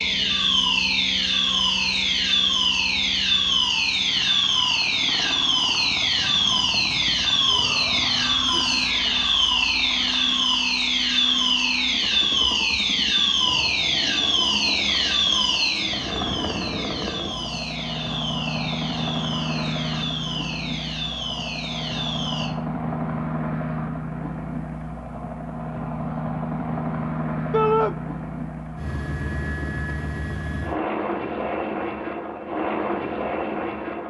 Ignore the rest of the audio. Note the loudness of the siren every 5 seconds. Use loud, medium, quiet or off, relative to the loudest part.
loud, loud, loud, medium, medium, off, off.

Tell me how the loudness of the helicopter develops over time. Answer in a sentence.
The loudness of the helicopter goes up.